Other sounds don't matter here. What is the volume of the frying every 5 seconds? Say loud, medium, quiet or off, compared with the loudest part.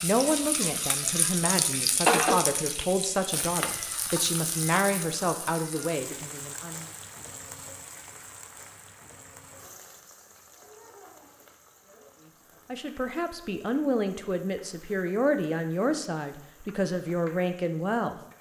loud, quiet, quiet, quiet.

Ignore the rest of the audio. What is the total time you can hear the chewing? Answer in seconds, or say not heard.
not heard.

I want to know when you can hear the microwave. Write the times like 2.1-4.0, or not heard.
not heard.